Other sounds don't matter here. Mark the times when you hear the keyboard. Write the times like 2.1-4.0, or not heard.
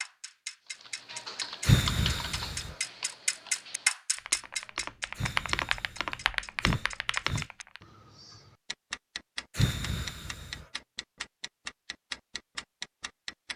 0.8-7.8.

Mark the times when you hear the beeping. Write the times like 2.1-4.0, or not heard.
not heard.